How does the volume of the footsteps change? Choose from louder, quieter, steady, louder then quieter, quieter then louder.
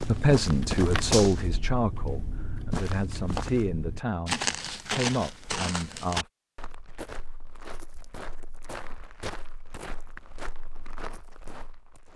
quieter.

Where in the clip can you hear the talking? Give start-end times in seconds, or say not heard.
0.0-6.2.